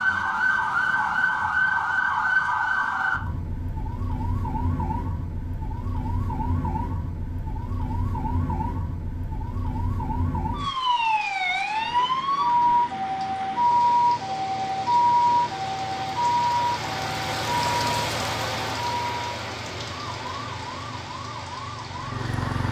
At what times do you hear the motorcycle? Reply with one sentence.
You can hear the motorcycle from 19.8 to 22.6 s.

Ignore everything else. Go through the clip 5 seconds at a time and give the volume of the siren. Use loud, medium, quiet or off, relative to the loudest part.
loud, medium, loud, loud, quiet.